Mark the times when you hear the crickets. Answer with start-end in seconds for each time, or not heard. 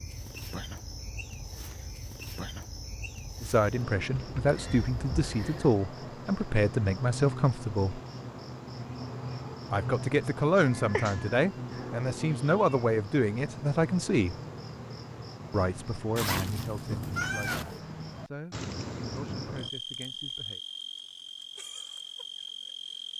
0.0-23.1.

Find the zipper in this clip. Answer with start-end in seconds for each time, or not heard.
16.1-17.6.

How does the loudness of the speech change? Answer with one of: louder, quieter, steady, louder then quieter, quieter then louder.
quieter.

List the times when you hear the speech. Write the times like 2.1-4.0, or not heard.
3.4-8.0, 9.7-14.3, 15.5-20.6.